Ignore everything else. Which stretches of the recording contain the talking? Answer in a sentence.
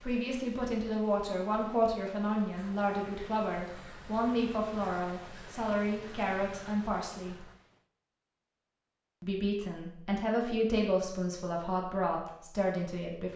The talking can be heard from 0.0 to 7.5 s and from 9.2 to 13.3 s.